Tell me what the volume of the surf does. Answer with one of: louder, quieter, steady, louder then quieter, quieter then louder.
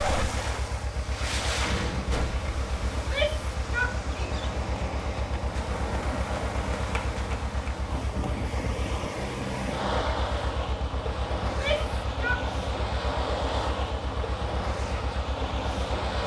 steady.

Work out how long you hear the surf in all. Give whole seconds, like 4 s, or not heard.
16 s.